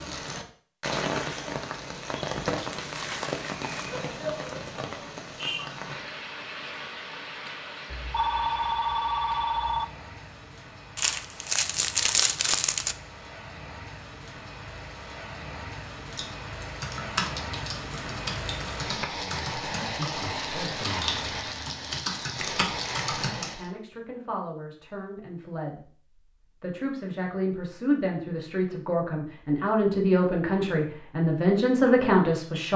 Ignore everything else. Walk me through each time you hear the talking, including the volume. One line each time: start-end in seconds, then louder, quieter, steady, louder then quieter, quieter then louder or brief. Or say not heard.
19.1-21.2 brief
23.3-32.7 louder.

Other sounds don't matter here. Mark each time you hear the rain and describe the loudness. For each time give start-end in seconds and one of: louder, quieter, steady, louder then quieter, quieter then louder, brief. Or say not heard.
0.0-23.7 quieter then louder.